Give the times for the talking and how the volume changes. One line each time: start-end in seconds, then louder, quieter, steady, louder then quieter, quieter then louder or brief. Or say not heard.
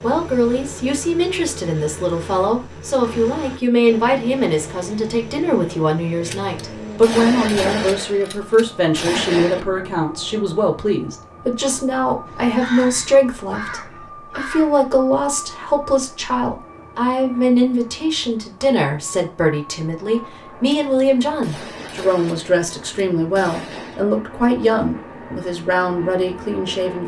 0.0-27.0 steady.